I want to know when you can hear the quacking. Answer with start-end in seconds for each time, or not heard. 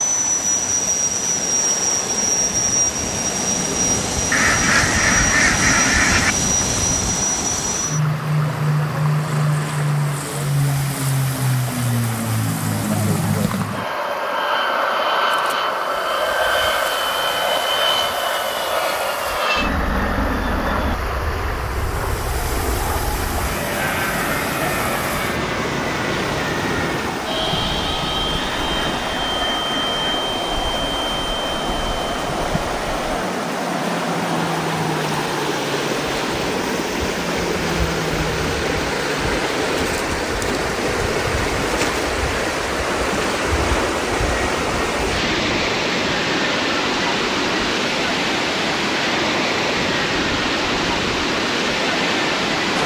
4.3-6.3, 28.4-30.0.